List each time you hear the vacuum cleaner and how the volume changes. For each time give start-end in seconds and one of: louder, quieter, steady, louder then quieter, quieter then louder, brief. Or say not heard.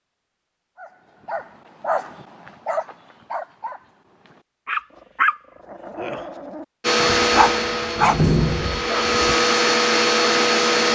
6.8-10.9 quieter then louder.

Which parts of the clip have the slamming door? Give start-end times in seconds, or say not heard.
8.0-8.8.